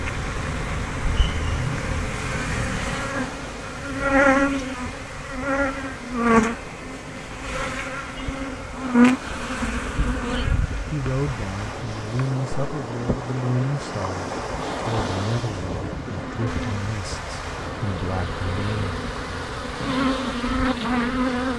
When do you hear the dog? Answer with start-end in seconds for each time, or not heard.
not heard.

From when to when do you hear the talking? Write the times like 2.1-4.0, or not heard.
10.9-19.0.